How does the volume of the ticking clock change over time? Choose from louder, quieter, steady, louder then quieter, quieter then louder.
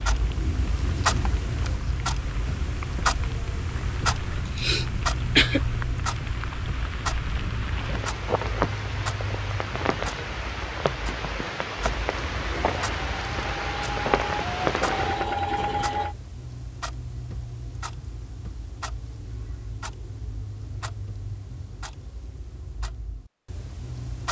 quieter.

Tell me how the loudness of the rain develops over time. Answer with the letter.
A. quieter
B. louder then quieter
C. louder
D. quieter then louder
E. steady
C.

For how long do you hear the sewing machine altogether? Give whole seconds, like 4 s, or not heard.
4 s.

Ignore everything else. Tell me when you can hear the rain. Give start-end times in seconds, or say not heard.
0.0-15.3.